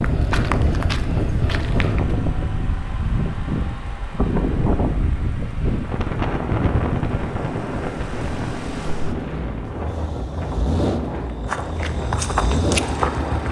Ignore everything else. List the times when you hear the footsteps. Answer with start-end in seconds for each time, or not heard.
0.0-2.1, 11.2-13.4.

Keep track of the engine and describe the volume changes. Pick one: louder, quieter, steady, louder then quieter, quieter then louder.
louder.